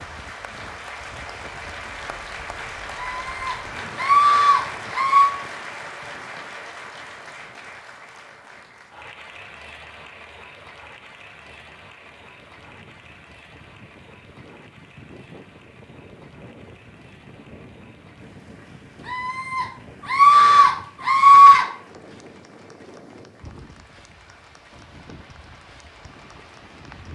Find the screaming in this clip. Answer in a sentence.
The screaming can be heard from 3.0 to 5.3 s and from 19.1 to 21.6 s.